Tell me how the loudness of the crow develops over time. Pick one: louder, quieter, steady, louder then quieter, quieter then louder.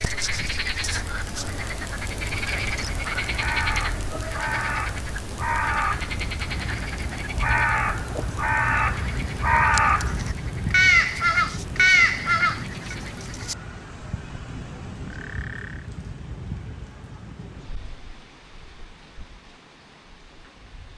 louder.